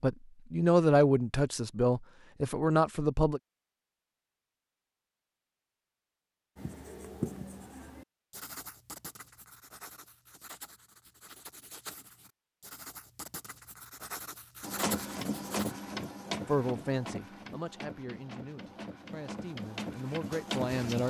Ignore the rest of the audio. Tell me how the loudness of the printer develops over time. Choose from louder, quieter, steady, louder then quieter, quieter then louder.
quieter then louder.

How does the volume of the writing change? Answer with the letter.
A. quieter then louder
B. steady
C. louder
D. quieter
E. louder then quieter
A.